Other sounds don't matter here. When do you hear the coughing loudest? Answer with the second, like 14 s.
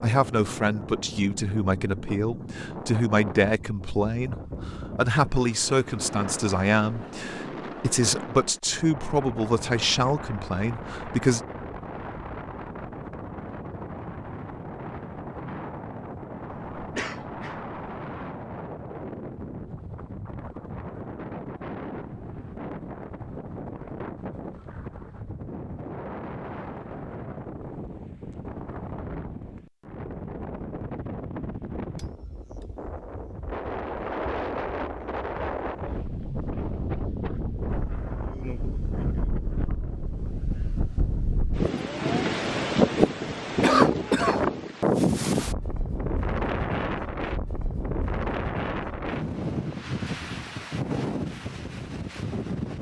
44 s.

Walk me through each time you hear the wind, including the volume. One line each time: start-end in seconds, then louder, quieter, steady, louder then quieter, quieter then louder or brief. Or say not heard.
0.0-52.7 louder.